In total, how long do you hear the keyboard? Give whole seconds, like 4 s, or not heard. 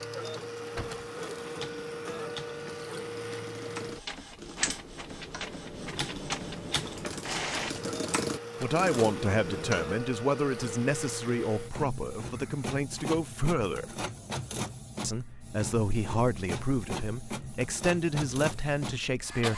9 s.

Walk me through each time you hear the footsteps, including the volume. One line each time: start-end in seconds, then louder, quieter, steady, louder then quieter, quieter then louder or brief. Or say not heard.
not heard.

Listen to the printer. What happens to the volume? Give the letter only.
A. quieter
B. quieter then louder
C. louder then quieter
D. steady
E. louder
D.